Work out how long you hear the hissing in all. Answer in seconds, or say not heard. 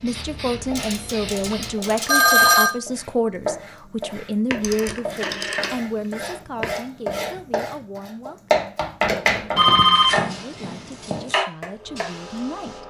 4 s.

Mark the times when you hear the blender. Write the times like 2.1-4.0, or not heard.
not heard.